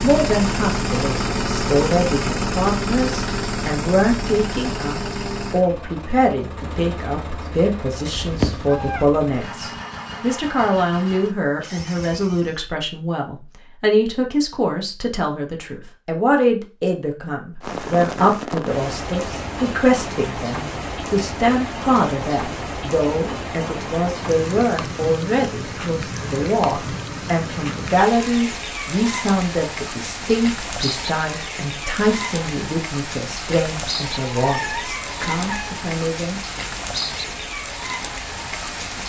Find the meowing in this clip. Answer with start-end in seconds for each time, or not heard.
8.1-9.1, 34.2-35.8.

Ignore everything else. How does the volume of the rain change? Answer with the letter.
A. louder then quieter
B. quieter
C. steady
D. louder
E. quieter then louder
C.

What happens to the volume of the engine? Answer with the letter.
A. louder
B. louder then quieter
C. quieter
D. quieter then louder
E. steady
C.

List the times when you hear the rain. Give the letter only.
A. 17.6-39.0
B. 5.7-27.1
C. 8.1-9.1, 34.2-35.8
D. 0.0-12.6
A.